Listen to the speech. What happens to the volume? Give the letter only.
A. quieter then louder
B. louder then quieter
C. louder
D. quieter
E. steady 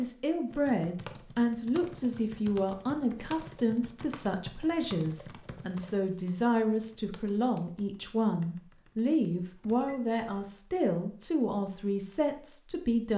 E.